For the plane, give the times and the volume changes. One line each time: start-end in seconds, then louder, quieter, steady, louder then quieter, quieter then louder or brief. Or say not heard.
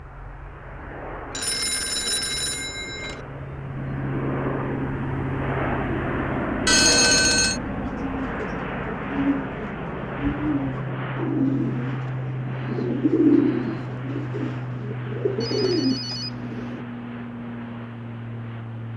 0.0-18.9 louder then quieter.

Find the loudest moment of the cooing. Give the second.
13 s.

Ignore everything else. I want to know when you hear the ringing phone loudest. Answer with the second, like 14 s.
7 s.